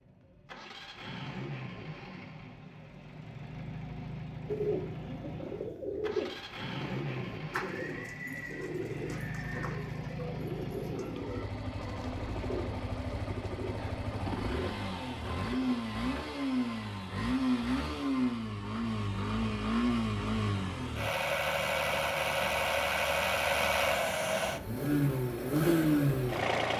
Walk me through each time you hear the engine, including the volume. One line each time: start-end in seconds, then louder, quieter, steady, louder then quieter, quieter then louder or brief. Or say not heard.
0.0-26.7 louder.